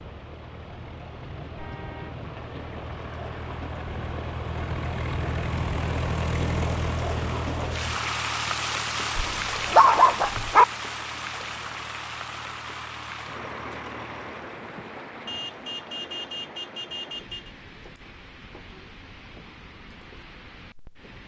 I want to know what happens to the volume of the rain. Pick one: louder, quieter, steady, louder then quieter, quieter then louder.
louder then quieter.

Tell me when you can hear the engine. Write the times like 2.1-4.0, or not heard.
0.1-14.4.